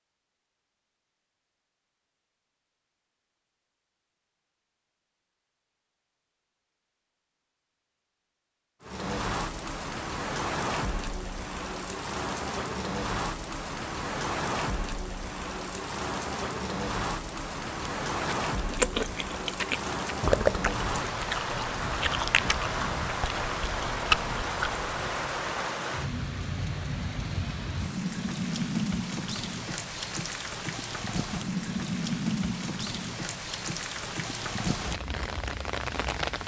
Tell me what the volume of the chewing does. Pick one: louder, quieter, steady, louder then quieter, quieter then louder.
quieter then louder.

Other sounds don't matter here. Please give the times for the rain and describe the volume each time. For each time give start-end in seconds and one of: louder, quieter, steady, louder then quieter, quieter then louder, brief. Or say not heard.
8.8-36.4 steady.